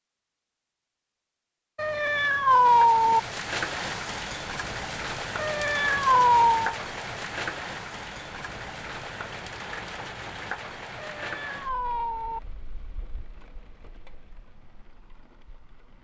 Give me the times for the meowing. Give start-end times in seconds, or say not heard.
1.8-3.2, 5.3-6.8, 10.9-12.4.